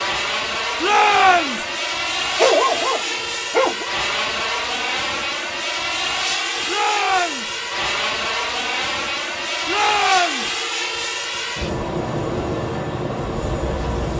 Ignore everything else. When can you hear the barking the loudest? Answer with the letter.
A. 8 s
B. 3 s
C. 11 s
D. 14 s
B.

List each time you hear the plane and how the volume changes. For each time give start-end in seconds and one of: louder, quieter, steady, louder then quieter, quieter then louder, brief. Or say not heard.
0.0-14.1 steady.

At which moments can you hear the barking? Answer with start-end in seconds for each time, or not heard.
2.4-3.9.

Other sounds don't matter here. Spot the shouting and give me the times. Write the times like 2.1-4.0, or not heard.
0.8-1.6, 6.7-7.5, 9.7-10.5.